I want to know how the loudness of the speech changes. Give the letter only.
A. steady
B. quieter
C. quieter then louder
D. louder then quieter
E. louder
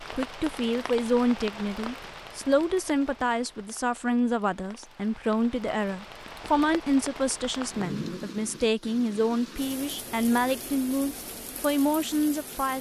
A.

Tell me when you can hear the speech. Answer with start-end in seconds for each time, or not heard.
0.1-12.7.